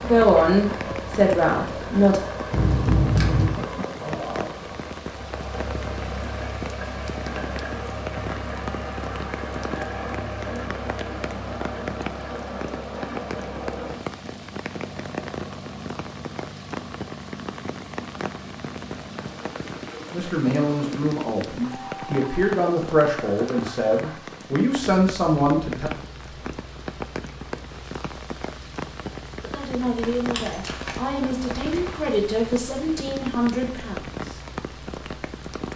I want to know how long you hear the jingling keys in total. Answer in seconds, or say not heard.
3 s.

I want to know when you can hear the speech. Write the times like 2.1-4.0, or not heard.
0.0-2.2, 20.1-25.9, 29.4-34.4.